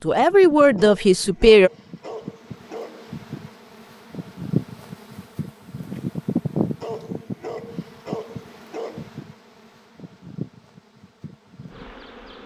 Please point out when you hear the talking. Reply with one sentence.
The talking can be heard from 0.0 to 1.7 s.